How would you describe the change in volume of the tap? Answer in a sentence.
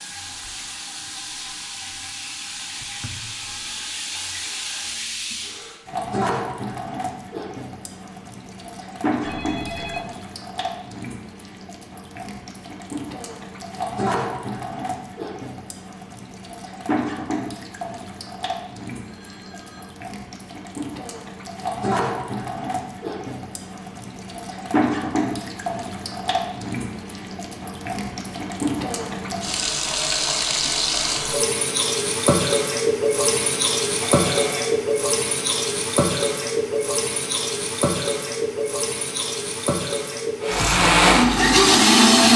The loudness of the tap goes up.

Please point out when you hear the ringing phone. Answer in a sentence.
The ringing phone can be heard from 9.2 to 10.1 s, from 19.0 to 19.9 s and from 34.0 to 34.8 s.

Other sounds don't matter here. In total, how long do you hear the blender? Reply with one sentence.
You can hear the blender for 2 seconds altogether.